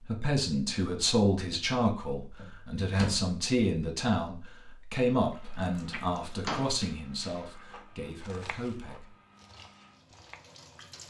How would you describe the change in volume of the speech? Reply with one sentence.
The volume of the speech goes down.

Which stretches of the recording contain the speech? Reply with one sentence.
The speech can be heard from 0.0 to 9.2 s.